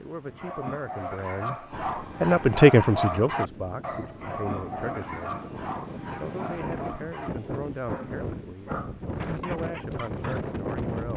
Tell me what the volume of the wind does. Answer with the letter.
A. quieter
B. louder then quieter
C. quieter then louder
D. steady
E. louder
E.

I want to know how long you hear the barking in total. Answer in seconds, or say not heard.
10 s.